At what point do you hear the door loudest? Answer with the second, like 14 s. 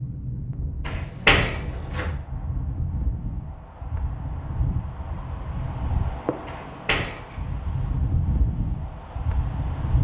1 s.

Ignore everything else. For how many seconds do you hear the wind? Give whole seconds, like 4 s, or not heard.
10 s.